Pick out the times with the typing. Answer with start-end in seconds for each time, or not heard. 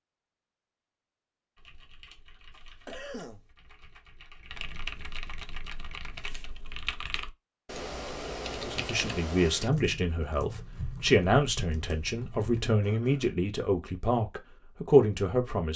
1.6-12.7.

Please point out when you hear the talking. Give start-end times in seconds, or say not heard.
8.6-15.7.